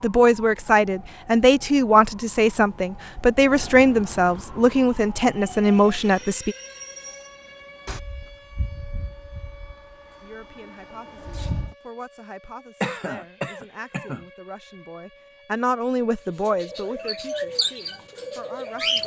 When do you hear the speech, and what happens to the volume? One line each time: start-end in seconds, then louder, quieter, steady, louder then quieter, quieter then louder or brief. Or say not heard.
0.0-6.5 steady
10.2-19.0 louder then quieter.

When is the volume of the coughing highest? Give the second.
13 s.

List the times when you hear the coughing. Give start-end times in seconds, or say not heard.
12.8-14.2.